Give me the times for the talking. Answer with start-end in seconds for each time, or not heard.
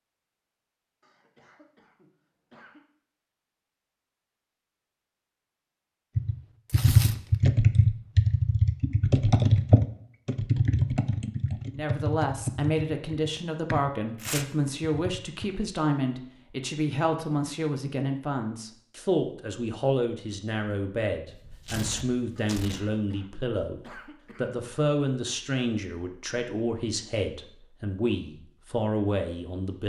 11.7-29.8.